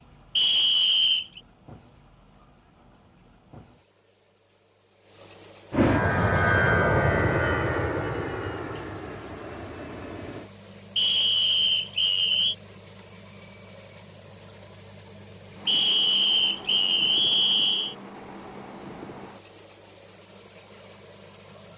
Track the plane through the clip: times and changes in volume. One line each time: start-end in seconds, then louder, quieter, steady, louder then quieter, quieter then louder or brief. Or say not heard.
5.7-10.5 quieter.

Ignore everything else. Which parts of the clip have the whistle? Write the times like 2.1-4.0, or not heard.
0.3-1.4, 10.9-12.6, 15.7-17.9.